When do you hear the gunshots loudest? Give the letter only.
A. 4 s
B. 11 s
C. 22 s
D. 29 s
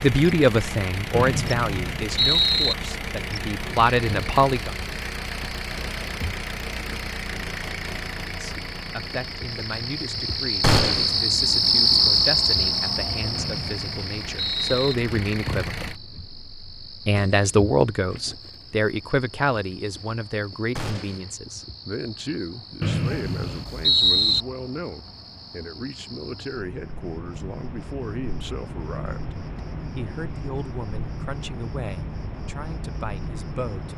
B.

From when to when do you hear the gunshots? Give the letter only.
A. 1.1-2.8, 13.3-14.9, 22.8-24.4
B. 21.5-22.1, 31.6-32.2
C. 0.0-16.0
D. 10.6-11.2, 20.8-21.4
D.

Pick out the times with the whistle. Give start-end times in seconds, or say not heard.
1.1-2.8, 13.3-14.9, 22.8-24.4.